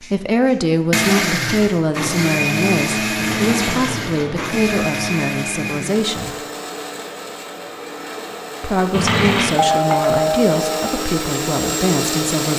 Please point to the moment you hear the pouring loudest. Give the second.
9 s.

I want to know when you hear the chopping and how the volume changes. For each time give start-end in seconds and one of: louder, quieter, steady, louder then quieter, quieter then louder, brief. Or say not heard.
not heard.